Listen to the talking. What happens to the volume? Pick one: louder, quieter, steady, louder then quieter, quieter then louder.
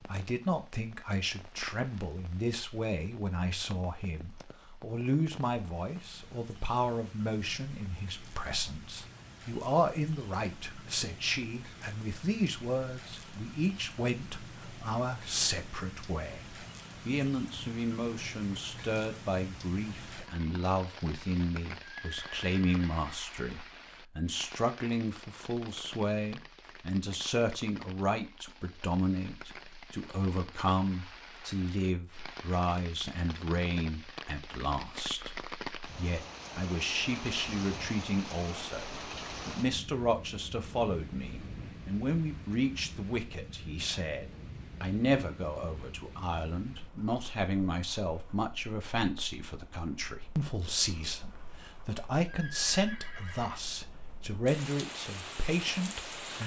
steady.